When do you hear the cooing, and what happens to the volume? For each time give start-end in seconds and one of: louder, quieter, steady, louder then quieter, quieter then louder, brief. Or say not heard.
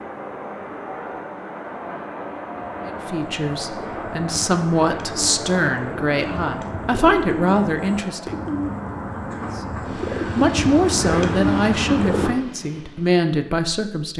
2.5-12.3 louder.